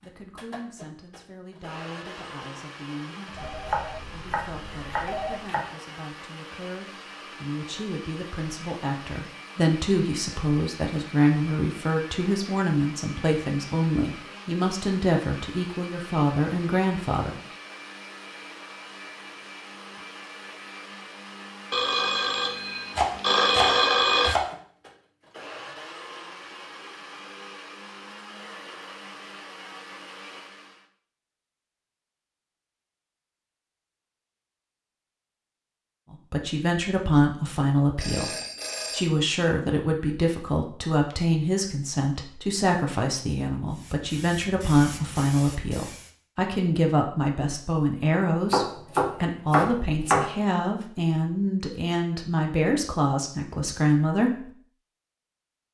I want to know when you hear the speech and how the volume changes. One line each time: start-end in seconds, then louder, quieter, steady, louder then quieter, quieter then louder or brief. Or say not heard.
0.0-17.4 louder
36.1-38.3 brief
38.9-54.5 steady.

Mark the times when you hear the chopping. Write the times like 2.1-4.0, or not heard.
3.6-5.7, 22.9-24.5, 48.5-50.3.